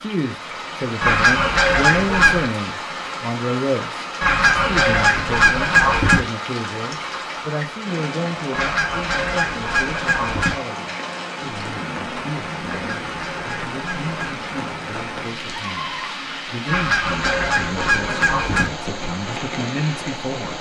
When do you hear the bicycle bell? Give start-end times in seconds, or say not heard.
not heard.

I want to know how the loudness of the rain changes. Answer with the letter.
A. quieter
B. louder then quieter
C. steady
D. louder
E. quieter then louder
C.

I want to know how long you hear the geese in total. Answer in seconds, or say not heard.
9 s.